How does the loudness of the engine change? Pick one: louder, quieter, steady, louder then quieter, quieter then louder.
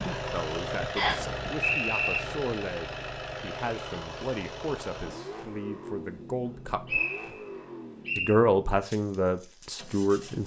quieter.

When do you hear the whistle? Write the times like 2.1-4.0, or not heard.
0.9-2.2, 6.5-8.3.